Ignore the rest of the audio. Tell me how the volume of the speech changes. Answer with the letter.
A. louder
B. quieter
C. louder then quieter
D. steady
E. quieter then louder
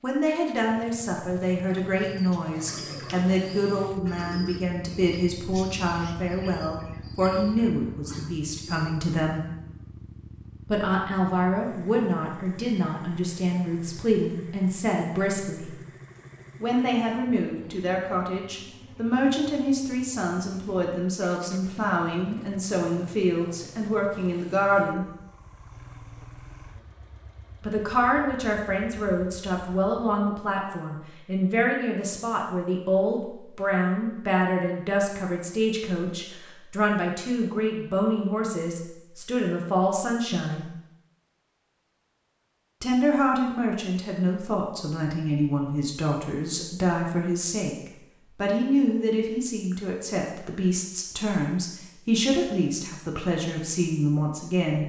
D.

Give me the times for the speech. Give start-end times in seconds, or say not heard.
0.0-9.4, 10.7-15.7, 16.6-25.1, 27.6-40.7, 42.8-54.8.